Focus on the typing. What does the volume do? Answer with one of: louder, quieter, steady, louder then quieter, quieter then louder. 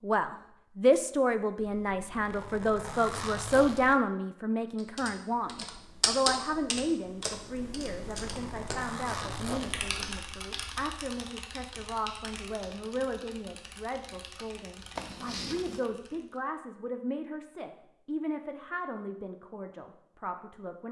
quieter.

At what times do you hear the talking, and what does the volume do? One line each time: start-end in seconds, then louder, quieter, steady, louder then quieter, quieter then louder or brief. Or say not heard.
0.0-20.8 quieter.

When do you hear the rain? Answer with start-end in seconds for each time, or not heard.
not heard.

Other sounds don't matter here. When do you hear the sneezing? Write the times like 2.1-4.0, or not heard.
not heard.